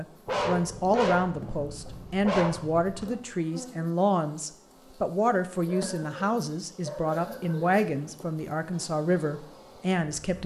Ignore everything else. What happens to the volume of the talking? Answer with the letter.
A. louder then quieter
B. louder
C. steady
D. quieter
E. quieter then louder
C.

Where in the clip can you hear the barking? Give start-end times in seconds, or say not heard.
0.2-3.2, 5.7-7.8.